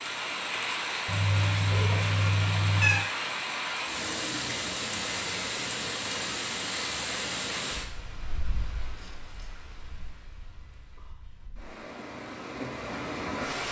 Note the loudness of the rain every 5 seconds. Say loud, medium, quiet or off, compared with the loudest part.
loud, loud, medium.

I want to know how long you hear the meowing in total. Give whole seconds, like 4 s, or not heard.
2 s.